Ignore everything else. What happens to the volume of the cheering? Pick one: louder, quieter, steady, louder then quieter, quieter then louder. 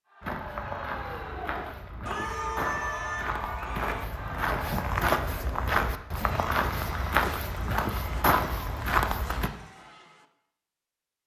louder then quieter.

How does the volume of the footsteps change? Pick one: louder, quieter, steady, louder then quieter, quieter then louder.
louder.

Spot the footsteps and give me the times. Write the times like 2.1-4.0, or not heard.
0.2-9.5.